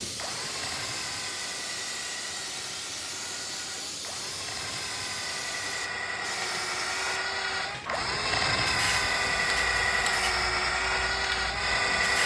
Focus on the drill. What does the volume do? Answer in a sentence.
The volume of the drill goes up.